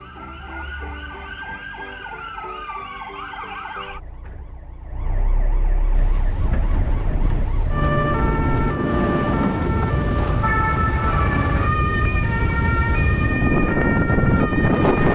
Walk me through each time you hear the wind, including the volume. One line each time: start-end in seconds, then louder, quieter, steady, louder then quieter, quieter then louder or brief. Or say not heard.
5.9-15.0 louder.